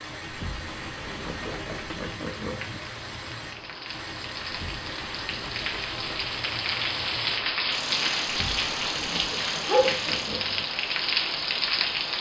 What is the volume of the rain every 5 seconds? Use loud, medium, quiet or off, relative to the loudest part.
quiet, loud, loud.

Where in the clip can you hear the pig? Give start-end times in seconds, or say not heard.
1.1-2.8, 8.9-10.7.